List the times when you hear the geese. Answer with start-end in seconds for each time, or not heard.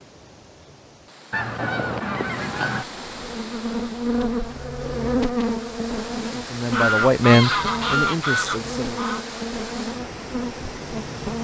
1.3-2.9, 6.7-9.2.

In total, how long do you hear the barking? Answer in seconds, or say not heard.
not heard.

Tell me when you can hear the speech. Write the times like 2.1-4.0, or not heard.
6.2-9.0.